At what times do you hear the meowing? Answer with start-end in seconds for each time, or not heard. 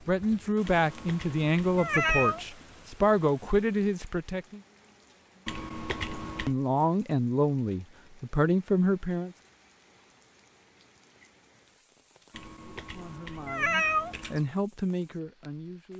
0.7-2.5, 5.5-6.5, 12.3-14.4.